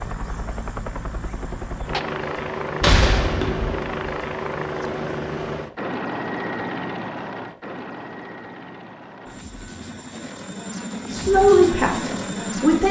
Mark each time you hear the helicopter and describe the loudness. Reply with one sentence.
You can hear the helicopter from 0.0 to 12.8 s, getting quieter then louder.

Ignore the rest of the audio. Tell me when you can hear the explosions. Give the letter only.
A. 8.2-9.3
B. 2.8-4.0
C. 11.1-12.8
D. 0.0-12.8
B.